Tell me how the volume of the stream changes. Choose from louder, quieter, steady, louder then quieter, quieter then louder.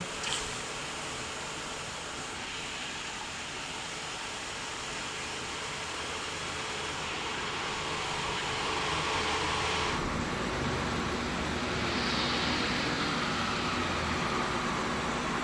steady.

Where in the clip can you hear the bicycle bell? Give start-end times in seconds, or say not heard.
not heard.